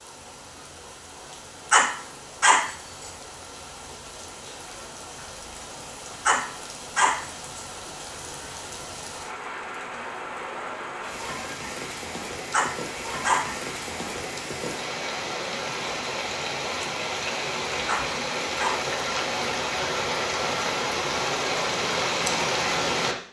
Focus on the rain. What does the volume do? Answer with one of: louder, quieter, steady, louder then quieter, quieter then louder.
louder.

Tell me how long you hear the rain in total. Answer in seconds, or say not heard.
23 s.